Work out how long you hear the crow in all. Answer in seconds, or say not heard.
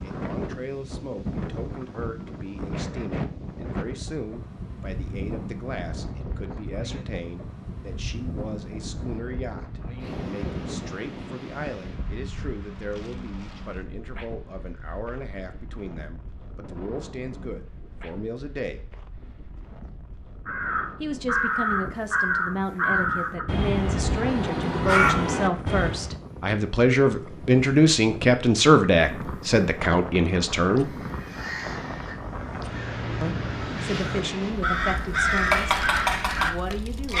12 s.